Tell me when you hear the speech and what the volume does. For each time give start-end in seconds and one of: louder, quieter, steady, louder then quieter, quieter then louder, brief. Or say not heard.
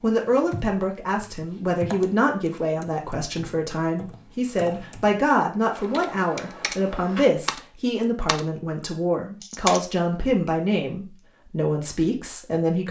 0.0-12.8 steady.